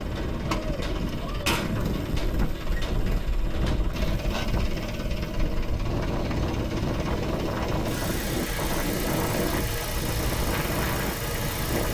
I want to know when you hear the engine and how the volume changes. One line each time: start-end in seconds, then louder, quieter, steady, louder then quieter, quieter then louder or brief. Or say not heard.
0.0-11.8 steady.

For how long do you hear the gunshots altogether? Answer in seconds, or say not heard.
4 s.